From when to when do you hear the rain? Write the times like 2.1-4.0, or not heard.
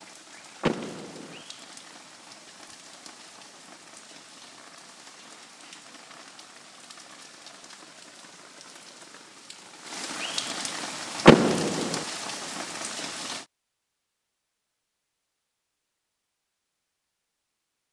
0.0-13.4.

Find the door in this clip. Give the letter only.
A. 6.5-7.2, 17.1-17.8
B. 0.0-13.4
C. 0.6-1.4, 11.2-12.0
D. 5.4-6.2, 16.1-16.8
C.